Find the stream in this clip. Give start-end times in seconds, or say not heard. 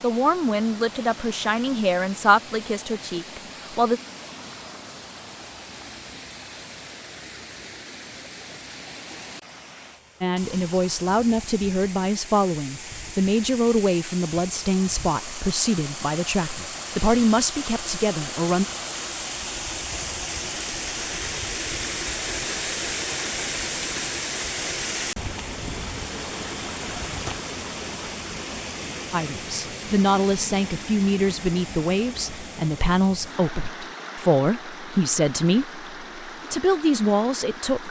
0.0-37.8.